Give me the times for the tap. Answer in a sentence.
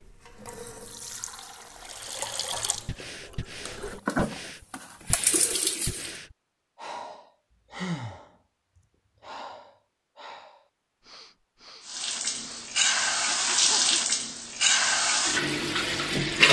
The tap can be heard from 0.0 to 6.1 s and from 11.8 to 16.4 s.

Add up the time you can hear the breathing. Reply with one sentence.
You can hear the breathing for 11 seconds altogether.